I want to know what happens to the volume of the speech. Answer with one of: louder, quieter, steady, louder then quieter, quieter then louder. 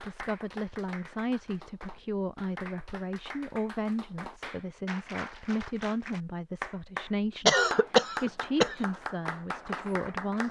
steady.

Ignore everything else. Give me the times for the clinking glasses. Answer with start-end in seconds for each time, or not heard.
not heard.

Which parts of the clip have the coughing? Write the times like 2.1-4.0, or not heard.
7.5-8.8.